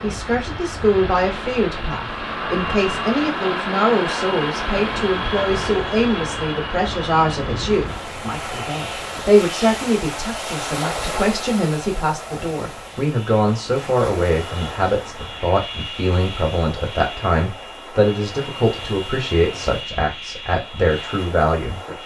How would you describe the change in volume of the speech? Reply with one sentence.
The loudness of the speech stays about the same.